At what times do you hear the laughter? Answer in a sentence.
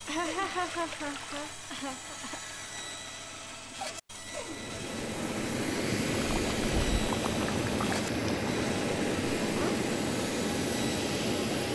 The laughter can be heard from 0.1 to 2.4 s and from 9.4 to 9.8 s.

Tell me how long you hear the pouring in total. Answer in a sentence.
You can hear the pouring for 4 seconds altogether.